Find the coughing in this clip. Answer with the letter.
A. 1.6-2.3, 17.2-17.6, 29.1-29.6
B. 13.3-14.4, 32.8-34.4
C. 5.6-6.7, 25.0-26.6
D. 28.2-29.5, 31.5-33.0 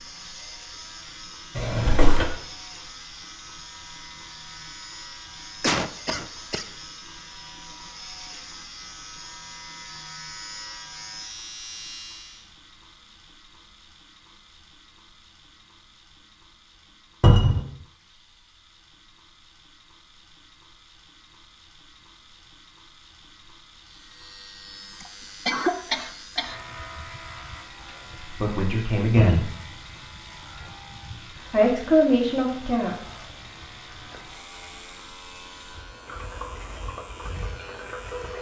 C.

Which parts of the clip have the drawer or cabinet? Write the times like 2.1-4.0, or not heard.
1.6-2.3, 17.2-17.6, 29.1-29.6.